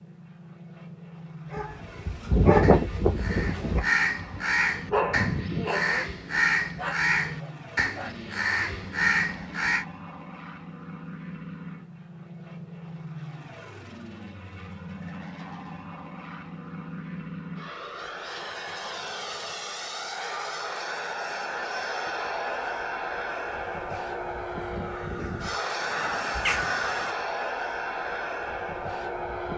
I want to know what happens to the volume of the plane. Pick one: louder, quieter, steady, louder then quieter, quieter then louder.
louder.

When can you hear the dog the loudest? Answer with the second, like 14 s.
3 s.